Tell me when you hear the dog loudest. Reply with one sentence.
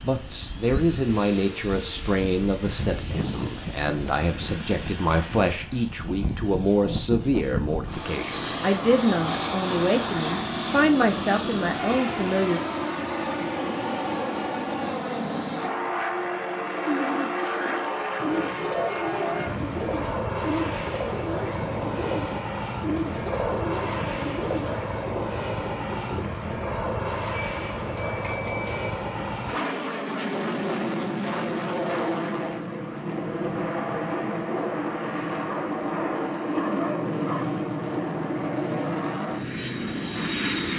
The volume of the dog peaks at 37 seconds.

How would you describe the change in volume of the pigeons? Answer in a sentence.
The volume of the pigeons stays about the same.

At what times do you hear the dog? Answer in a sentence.
The dog can be heard from 35.5 to 37.5 s.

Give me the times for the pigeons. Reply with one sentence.
The pigeons can be heard from 16.8 to 26.3 s.